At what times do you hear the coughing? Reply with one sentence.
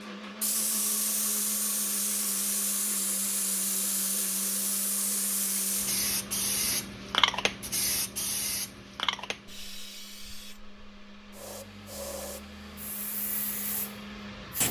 The coughing can't be heard in this clip.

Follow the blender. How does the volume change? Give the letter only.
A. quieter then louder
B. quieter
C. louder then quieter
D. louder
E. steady
A.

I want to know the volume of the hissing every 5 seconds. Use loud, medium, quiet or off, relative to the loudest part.
loud, loud, medium.